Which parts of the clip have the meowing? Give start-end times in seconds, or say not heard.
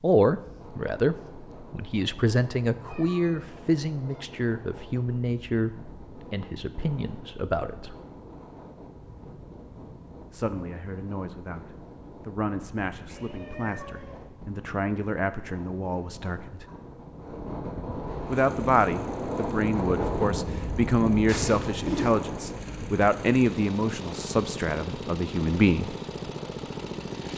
2.9-4.2, 13.1-14.2, 21.2-22.1.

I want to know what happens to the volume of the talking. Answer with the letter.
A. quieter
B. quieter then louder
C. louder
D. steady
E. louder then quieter
B.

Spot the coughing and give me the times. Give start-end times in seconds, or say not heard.
not heard.